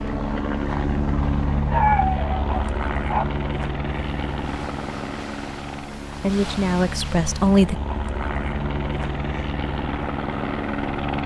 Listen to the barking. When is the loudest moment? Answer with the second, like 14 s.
2 s.